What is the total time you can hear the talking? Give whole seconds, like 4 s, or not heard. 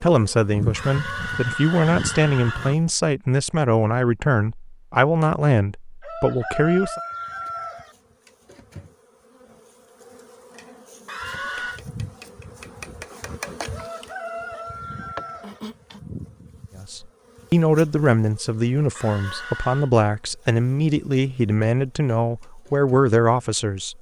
14 s.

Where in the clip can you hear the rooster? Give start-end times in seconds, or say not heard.
6.0-8.0, 13.7-15.6.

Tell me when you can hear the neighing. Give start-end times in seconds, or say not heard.
0.8-2.8, 11.1-11.8, 18.9-19.9.